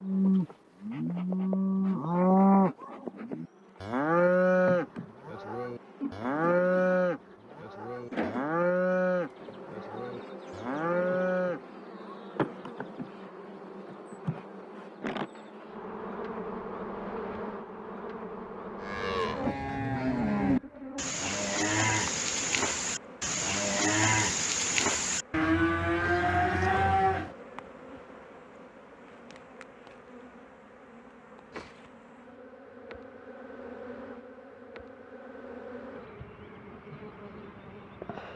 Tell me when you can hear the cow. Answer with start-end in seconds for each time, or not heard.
0.0-11.6, 18.8-27.3.